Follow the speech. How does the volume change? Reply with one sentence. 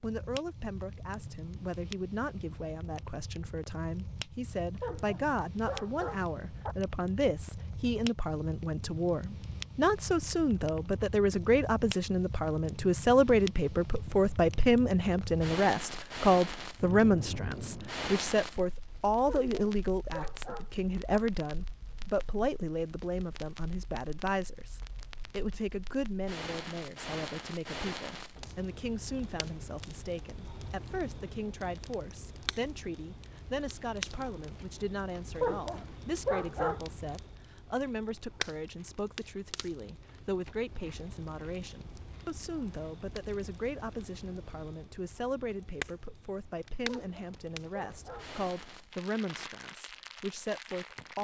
The volume of the speech goes up, then down.